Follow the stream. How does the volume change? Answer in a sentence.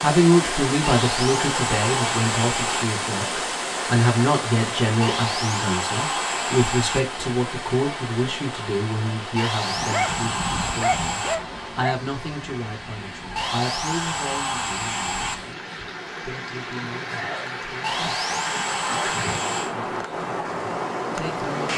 The loudness of the stream goes down, then up.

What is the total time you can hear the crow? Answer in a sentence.
You can't hear the crow here.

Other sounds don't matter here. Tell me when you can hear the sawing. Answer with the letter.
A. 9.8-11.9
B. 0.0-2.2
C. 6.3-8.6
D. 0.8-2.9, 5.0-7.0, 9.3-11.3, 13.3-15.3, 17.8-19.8
D.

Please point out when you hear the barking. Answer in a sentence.
The barking can be heard from 9.8 to 11.9 s.